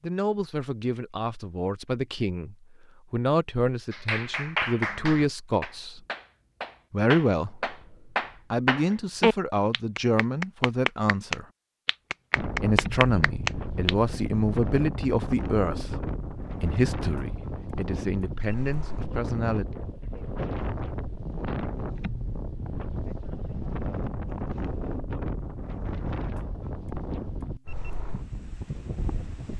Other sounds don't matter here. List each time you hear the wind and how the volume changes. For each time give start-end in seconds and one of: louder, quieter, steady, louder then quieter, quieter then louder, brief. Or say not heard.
12.3-29.5 steady.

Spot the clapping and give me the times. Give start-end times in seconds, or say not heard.
3.9-13.9.